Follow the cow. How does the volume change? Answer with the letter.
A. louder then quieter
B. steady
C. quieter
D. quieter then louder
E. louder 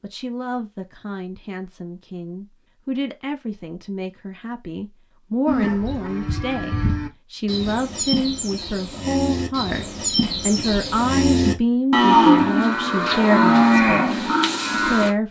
E.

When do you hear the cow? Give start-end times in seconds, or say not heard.
5.5-15.1.